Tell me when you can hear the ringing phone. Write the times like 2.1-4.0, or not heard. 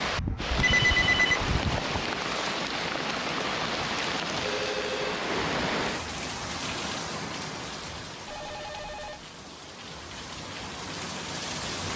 0.1-1.9, 4.5-5.2, 8.2-9.2.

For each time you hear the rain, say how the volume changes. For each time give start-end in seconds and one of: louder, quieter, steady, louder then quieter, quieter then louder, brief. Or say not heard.
0.0-11.9 quieter.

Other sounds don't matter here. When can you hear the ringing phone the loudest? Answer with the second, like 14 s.
1 s.